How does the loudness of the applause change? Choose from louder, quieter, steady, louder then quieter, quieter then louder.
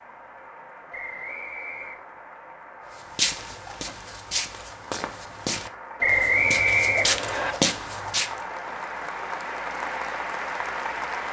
louder.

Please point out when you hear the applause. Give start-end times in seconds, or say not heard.
0.0-11.2.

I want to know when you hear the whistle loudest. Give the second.
6 s.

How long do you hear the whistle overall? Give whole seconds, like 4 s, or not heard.
3 s.